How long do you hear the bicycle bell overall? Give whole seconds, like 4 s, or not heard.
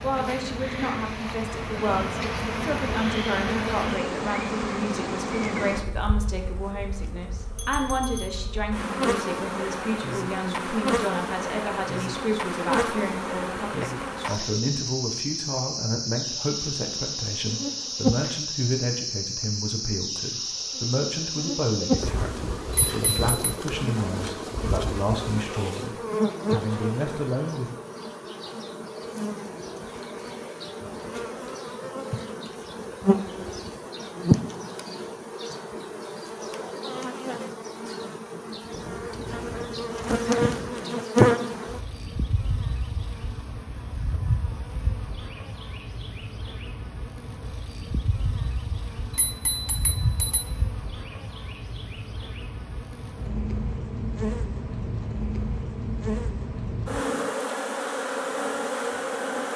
3 s.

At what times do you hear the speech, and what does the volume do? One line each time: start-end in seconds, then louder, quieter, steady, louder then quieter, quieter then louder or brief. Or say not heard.
0.0-27.8 steady.